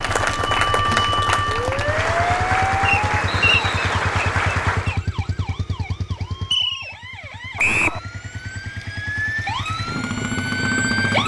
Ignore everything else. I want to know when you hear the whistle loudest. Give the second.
8 s.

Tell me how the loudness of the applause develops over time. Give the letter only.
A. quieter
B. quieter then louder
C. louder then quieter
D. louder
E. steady
E.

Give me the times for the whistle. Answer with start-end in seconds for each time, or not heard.
3.2-4.0, 7.5-8.0.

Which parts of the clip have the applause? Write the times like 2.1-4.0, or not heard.
0.0-5.0.